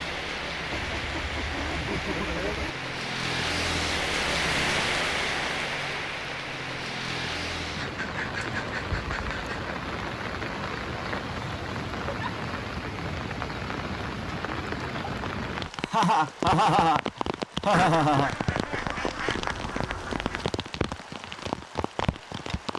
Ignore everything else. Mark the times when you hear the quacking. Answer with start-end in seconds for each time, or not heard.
0.7-2.8, 7.8-9.8, 17.7-20.6.